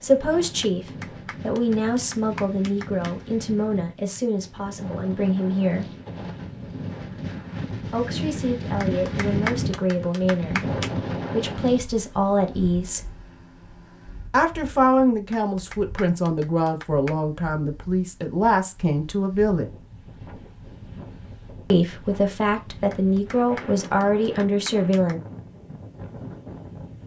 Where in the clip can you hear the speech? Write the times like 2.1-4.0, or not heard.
0.0-5.9, 7.9-13.2, 14.3-19.7, 21.7-25.2.